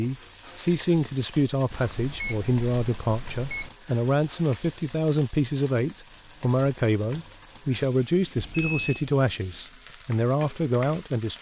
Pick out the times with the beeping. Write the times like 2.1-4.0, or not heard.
1.7-3.7, 8.3-9.1.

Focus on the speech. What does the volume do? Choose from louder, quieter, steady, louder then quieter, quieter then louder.
steady.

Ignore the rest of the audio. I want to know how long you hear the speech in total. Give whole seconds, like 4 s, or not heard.
11 s.